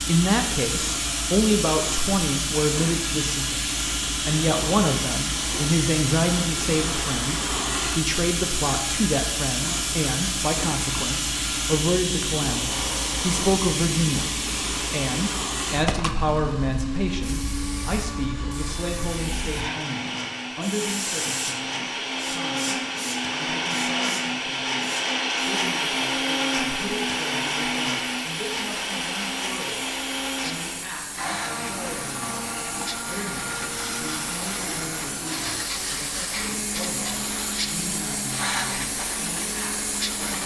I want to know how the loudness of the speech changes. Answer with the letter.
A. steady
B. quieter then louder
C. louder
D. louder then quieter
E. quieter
E.